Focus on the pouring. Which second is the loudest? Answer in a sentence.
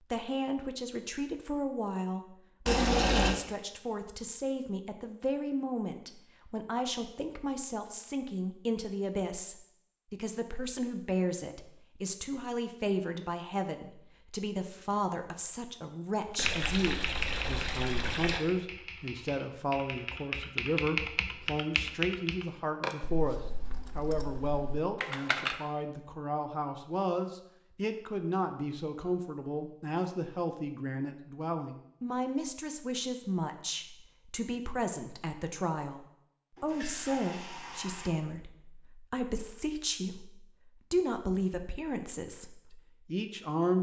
The loudest moment of the pouring is at 3 seconds.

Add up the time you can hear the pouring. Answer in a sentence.
The pouring can be heard for 4 seconds in total.